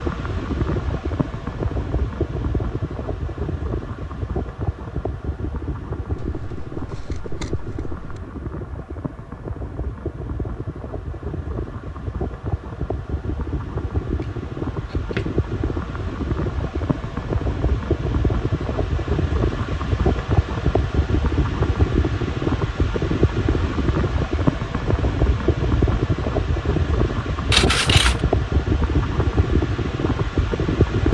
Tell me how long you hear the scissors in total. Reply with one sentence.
You can hear the scissors for 4 seconds altogether.